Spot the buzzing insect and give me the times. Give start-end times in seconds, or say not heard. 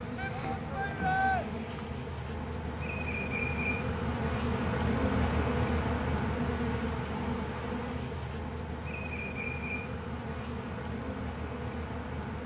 0.0-12.4.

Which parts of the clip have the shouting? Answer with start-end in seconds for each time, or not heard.
0.1-1.4.